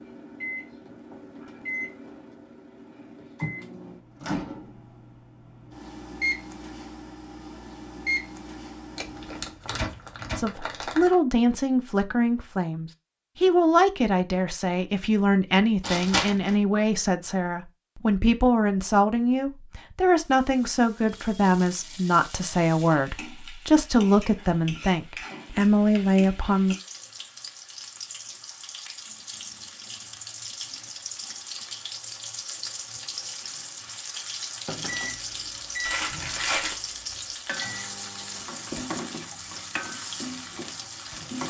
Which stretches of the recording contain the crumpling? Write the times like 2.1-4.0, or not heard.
8.9-11.2, 15.8-16.6, 35.9-36.8.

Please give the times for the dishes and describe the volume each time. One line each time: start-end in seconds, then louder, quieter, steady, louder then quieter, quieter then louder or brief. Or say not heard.
not heard.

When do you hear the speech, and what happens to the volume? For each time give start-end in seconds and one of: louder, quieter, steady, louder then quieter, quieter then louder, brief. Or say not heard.
10.3-26.8 steady.